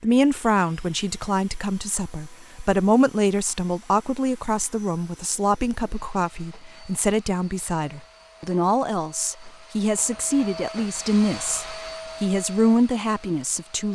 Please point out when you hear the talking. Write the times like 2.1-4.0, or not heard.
0.0-13.9.